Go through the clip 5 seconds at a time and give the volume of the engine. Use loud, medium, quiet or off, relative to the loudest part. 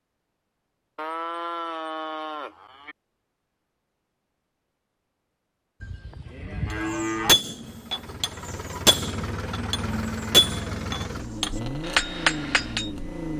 off, loud, loud.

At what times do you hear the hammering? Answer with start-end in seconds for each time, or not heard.
6.8-12.9.